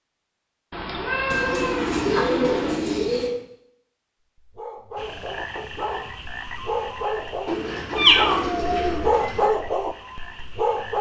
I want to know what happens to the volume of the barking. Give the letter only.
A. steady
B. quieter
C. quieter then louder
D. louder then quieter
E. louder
E.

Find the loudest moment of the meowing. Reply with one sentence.
The volume of the meowing peaks at 8 seconds.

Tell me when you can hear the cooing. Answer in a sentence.
You can hear the cooing from 1.3 to 3.3 s and from 7.5 to 9.5 s.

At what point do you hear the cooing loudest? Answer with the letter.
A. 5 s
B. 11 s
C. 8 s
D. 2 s
D.